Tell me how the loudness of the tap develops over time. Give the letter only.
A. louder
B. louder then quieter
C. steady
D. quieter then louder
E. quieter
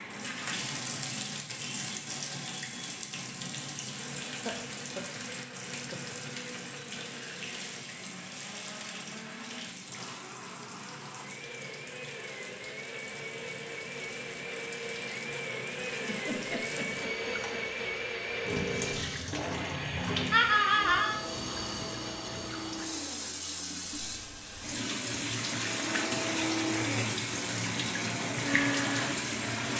D.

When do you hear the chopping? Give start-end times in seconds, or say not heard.
not heard.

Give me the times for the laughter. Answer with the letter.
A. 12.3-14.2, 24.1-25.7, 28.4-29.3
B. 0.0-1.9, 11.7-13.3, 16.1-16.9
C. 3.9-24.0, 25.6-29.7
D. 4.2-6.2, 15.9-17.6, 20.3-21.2
D.